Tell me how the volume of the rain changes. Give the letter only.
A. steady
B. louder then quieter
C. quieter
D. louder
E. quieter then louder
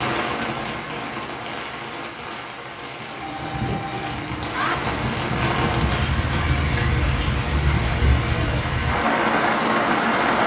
D.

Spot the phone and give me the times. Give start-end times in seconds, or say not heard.
3.2-4.8.